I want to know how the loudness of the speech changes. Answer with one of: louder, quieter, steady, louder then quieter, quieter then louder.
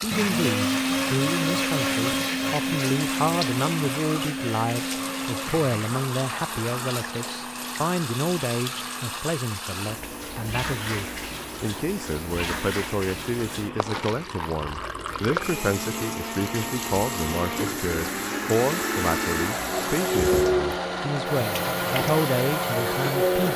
steady.